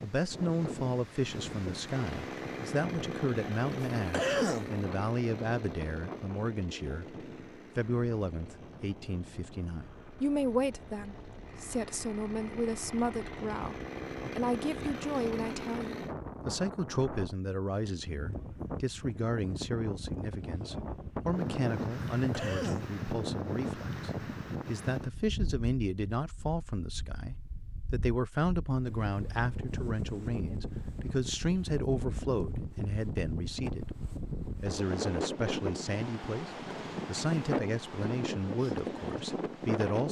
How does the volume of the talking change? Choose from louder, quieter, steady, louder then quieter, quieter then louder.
steady.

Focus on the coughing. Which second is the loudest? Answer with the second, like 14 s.
4 s.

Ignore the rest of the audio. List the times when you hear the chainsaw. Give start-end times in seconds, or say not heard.
1.9-16.1.